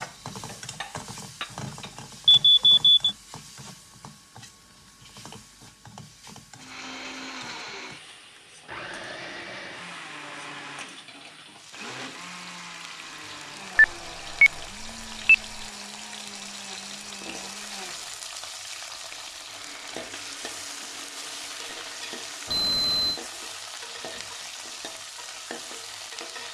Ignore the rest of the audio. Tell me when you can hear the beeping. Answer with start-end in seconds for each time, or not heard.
2.2-3.1, 13.8-15.7, 22.4-23.2.